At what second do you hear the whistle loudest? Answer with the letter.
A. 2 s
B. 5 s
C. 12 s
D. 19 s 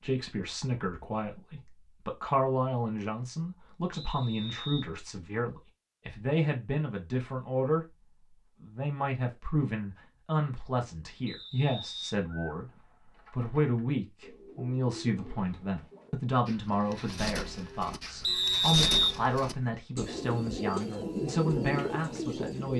D.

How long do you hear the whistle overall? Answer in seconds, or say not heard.
3 s.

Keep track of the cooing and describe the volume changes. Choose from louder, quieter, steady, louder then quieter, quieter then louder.
louder.